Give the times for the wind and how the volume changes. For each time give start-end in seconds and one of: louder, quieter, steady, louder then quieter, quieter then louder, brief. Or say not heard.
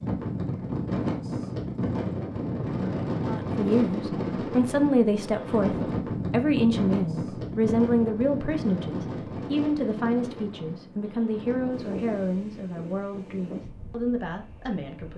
0.0-15.1 quieter.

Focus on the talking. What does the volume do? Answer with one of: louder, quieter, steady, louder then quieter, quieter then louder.
quieter.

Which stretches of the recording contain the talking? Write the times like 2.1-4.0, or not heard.
3.2-15.1.